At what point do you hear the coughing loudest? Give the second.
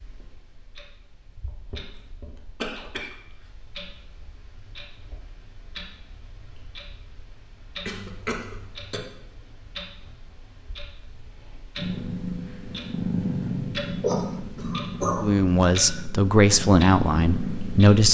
14 s.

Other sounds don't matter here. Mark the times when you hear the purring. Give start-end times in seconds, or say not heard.
11.8-18.0.